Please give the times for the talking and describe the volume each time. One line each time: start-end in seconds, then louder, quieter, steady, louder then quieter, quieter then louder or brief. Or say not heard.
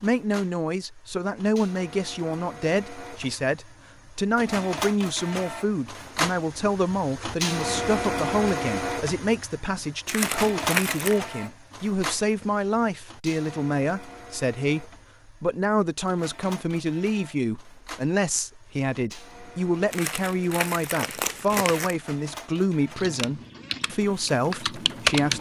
0.0-25.3 steady.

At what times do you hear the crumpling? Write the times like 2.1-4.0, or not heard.
10.1-11.2, 19.9-21.9.